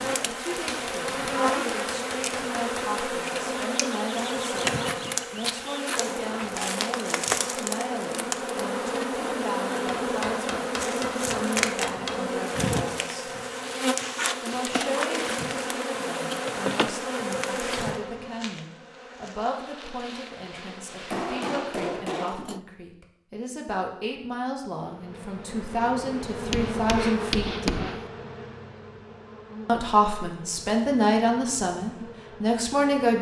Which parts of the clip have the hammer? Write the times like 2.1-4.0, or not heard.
0.7-3.0, 10.0-12.3, 20.6-22.6, 26.5-28.1.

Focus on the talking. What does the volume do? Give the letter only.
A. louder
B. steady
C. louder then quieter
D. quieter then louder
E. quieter
A.